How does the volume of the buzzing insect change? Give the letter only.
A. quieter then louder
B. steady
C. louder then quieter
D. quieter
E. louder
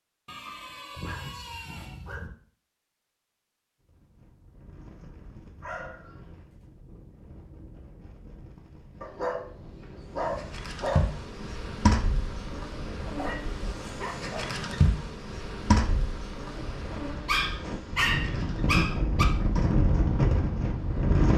D.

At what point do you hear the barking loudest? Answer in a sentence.
The volume of the barking peaks at 18 seconds.